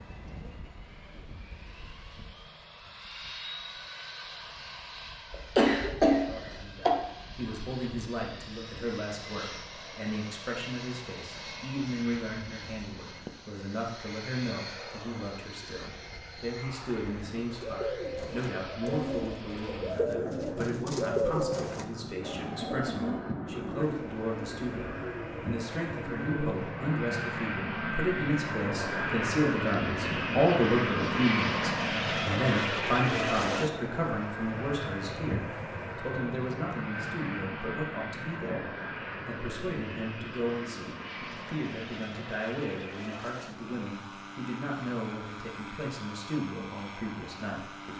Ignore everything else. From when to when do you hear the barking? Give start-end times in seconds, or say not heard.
not heard.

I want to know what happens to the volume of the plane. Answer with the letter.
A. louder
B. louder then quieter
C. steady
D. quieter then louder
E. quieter
B.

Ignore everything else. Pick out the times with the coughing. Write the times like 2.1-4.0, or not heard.
5.3-6.9.